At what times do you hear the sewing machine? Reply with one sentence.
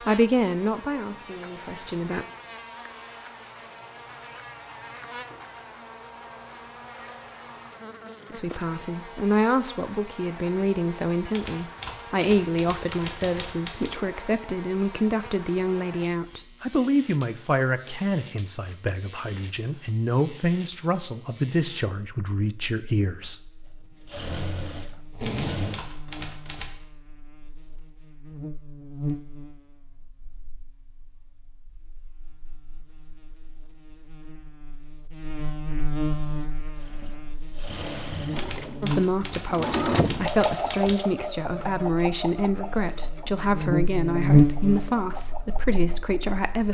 You can hear the sewing machine from 24.1 to 25.8 s and from 36.0 to 46.6 s.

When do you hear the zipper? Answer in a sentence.
The zipper can be heard from 25.1 to 25.8 s.